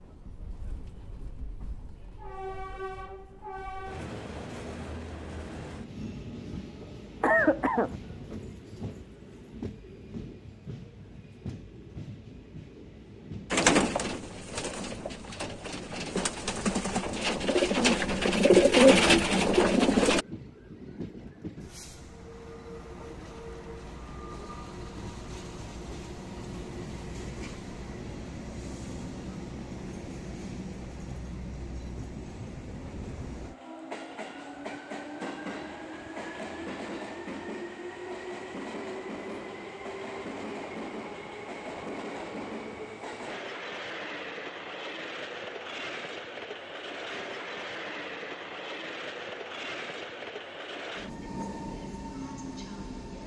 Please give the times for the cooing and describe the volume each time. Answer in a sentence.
You can hear the cooing from 13.5 to 20.2 s, getting louder.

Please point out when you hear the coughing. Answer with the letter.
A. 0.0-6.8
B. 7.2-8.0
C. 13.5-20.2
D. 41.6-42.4
B.